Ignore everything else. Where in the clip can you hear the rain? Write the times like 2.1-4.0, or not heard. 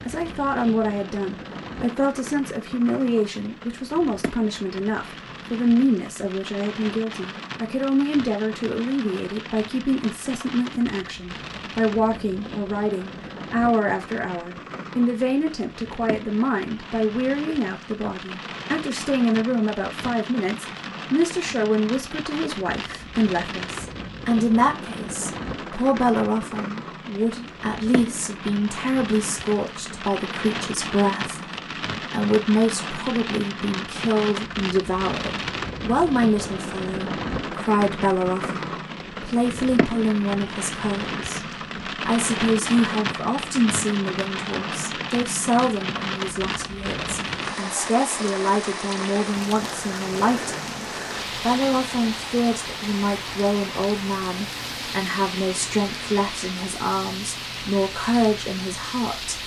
0.0-59.4.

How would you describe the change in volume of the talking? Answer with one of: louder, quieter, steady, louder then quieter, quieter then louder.
steady.